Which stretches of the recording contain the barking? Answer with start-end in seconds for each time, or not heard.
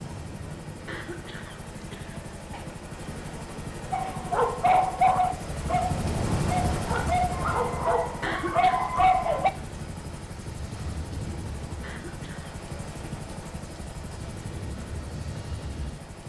3.9-9.5.